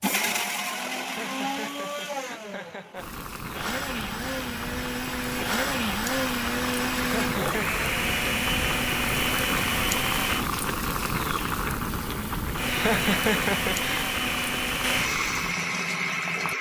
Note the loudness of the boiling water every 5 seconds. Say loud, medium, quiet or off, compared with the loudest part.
medium, loud, loud, medium.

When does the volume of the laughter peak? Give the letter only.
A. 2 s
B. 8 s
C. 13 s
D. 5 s
C.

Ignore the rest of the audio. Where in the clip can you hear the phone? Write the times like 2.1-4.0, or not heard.
not heard.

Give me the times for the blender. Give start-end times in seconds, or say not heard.
0.0-10.4, 12.6-16.5.